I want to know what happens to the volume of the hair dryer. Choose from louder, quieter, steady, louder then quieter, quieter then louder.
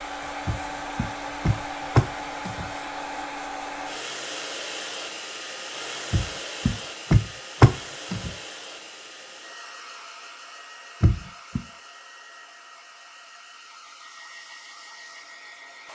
quieter.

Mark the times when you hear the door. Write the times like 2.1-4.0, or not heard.
0.5-2.7, 6.1-8.3, 11.0-11.6.